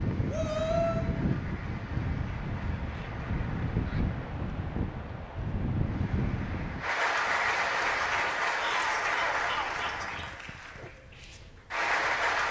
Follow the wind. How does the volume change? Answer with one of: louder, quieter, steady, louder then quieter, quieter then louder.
quieter.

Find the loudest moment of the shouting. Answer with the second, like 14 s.
1 s.